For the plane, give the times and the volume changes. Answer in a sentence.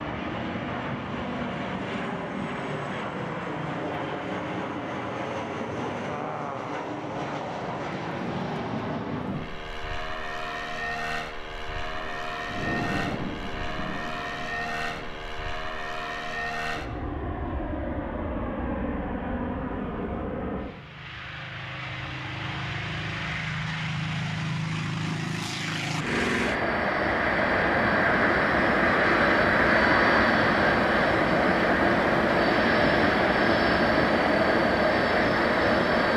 The plane can be heard from 0.0 to 36.1 s, getting louder.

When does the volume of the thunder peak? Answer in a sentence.
The loudest moment of the thunder is at 13 seconds.